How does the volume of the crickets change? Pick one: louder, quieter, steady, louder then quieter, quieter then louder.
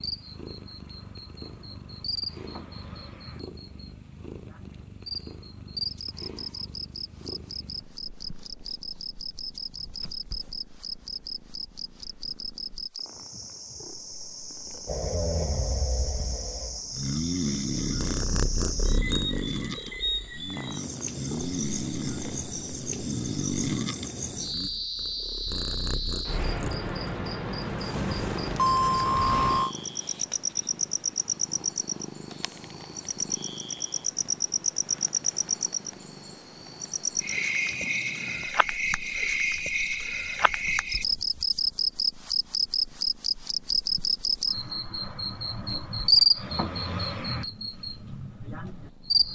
louder.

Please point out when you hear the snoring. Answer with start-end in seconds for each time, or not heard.
14.8-24.7.